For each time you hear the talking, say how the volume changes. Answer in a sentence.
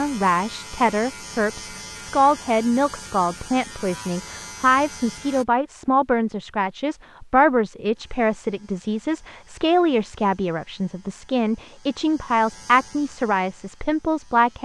You can hear the talking from 0.0 to 14.6 s, at a steady volume.